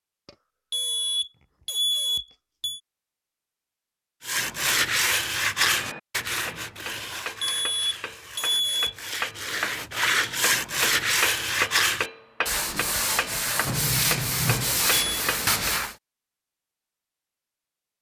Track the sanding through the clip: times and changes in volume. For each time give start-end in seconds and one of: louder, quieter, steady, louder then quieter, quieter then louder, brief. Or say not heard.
4.2-15.9 quieter then louder.